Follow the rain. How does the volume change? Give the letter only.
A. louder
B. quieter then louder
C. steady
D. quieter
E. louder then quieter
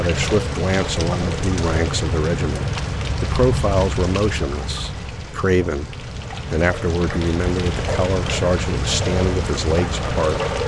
B.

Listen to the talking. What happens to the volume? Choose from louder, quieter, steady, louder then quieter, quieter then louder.
steady.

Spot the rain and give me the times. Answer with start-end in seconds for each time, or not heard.
0.0-10.6.